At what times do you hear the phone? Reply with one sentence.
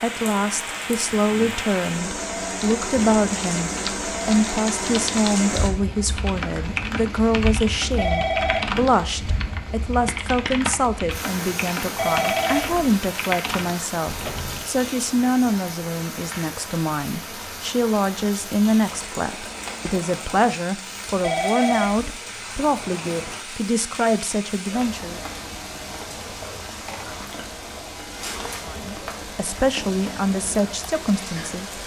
You can hear the phone from 8.0 to 8.8 s, from 11.9 to 12.8 s and from 21.2 to 22.1 s.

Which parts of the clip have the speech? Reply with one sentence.
You can hear the speech from 0.0 to 25.2 s and from 28.6 to 31.7 s.